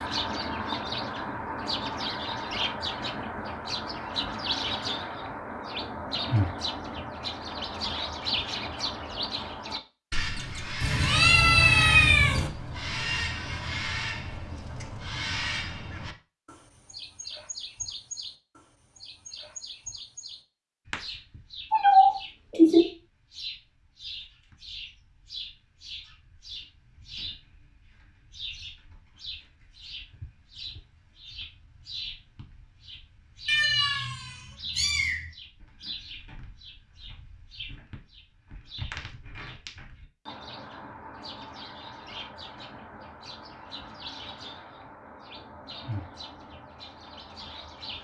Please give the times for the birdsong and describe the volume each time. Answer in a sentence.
You can hear the birdsong from 0.0 to 47.9 s, getting quieter.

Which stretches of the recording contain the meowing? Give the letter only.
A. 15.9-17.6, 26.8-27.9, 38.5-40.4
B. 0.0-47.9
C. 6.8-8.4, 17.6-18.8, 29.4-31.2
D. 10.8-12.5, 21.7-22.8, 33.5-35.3
D.